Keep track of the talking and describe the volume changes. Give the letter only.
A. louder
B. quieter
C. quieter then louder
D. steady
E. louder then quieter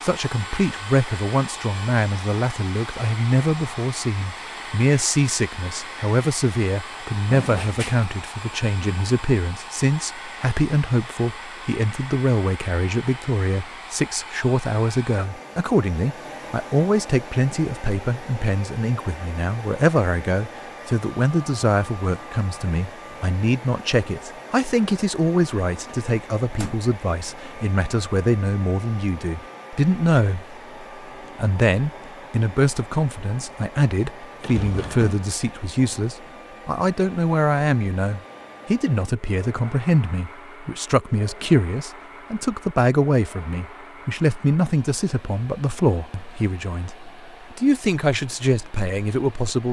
D.